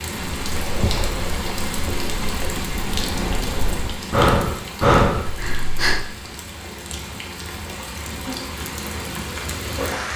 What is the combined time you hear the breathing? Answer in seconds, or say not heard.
6 s.